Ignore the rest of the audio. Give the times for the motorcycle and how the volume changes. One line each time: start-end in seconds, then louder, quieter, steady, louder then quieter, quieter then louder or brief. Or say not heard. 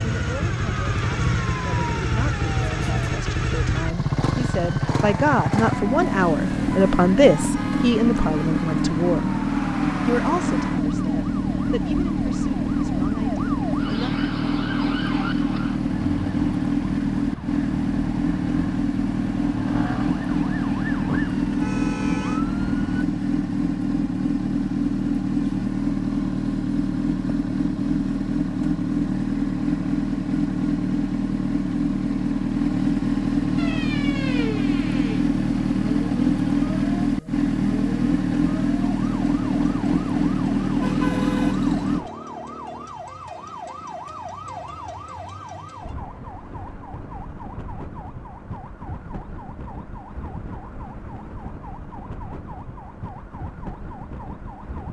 0.0-42.0 steady.